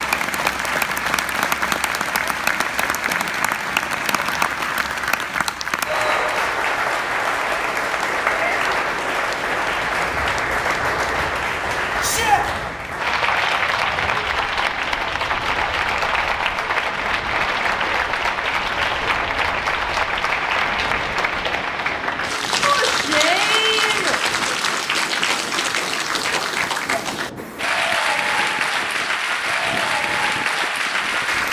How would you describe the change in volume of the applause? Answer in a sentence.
The loudness of the applause stays about the same.